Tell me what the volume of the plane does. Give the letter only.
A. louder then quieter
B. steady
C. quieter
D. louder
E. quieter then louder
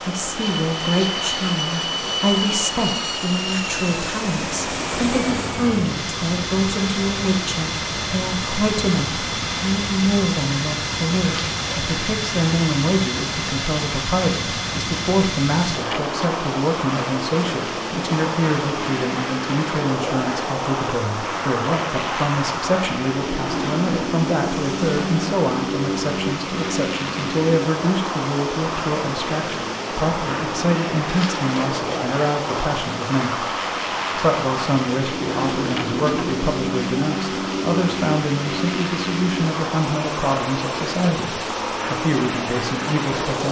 B.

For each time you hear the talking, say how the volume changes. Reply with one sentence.
The talking can be heard from 0.0 to 43.4 s, at a steady volume.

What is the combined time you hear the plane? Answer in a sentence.
You can hear the plane for 43 seconds altogether.